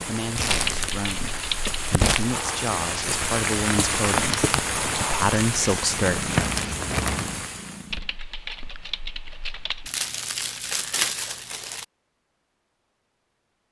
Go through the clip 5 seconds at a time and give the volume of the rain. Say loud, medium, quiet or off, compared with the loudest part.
loud, loud, off.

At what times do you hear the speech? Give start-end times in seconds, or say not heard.
0.0-6.3.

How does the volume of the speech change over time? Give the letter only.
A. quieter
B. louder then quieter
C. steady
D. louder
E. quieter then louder
D.